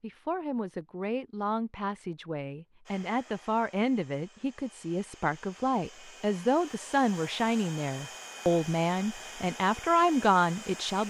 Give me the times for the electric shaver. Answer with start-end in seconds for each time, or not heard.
not heard.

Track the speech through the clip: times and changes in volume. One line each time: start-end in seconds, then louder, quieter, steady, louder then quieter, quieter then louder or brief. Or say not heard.
0.0-11.0 louder.